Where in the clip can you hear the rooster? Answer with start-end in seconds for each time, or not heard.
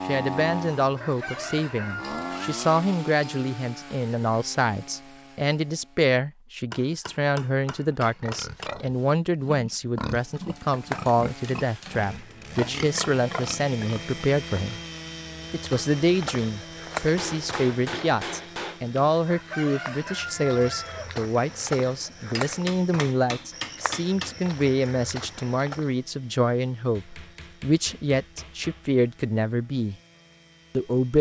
0.9-2.7, 19.2-21.1.